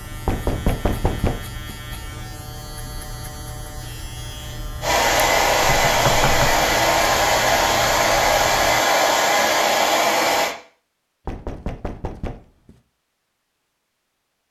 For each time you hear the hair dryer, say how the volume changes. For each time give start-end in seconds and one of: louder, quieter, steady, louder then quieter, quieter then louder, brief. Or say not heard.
4.8-10.6 steady.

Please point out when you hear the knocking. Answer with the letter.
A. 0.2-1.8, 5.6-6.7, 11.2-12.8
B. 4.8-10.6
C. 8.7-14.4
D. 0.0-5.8
A.